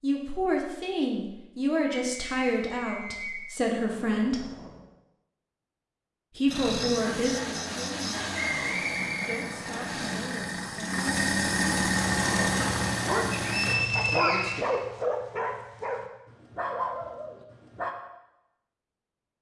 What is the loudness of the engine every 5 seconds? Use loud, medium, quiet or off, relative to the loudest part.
off, medium, loud, off.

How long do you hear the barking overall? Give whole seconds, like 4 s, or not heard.
6 s.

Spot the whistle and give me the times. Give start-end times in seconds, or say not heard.
1.9-3.5, 8.3-9.8, 13.3-14.8.